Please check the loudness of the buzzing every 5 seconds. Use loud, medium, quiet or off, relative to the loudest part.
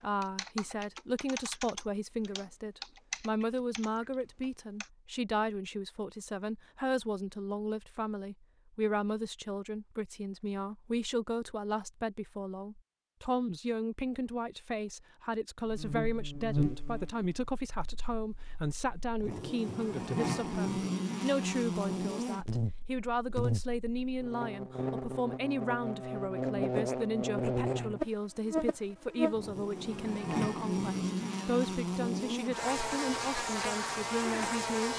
off, off, off, medium, loud, loud, loud.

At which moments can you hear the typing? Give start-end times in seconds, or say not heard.
0.0-4.9.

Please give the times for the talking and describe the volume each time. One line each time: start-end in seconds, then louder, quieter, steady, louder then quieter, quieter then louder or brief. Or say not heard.
0.0-34.9 steady.